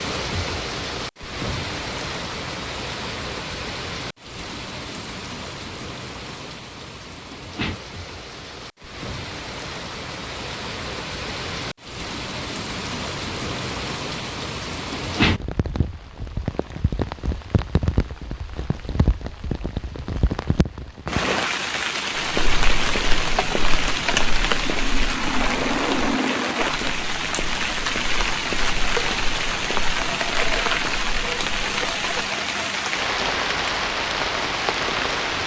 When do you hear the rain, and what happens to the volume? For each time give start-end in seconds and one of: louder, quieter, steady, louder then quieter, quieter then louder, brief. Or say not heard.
0.0-35.4 louder.